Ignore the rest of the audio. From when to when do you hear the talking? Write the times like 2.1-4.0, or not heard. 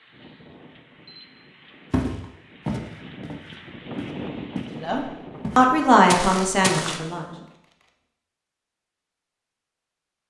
4.8-7.2.